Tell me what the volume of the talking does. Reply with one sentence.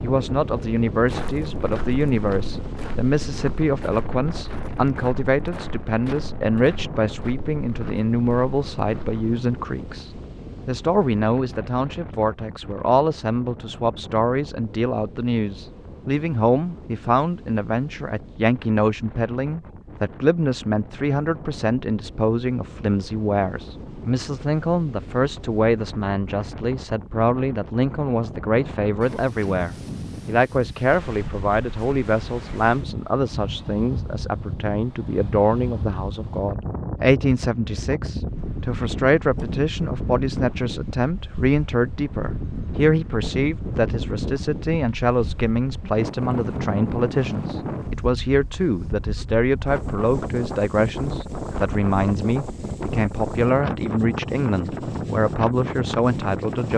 The volume of the talking stays about the same.